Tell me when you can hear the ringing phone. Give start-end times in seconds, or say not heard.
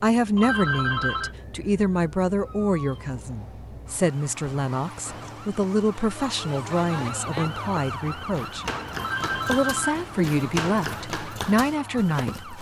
0.3-1.4, 8.9-10.1.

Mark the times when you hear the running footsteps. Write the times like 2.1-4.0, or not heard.
7.2-12.5.